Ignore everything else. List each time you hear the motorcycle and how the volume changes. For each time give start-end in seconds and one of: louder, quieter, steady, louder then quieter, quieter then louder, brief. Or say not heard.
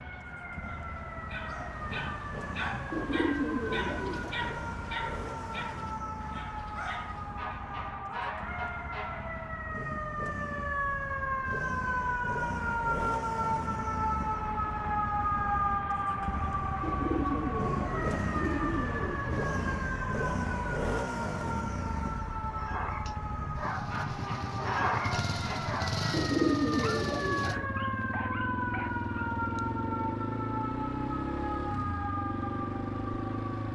0.2-33.7 louder.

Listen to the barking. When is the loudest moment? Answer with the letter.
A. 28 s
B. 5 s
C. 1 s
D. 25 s
D.